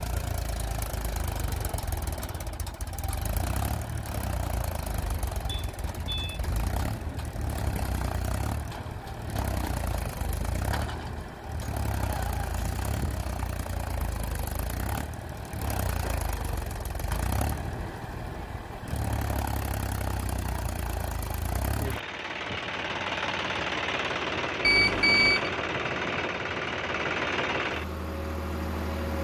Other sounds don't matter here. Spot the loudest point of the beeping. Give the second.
25 s.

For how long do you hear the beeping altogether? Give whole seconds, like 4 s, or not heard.
2 s.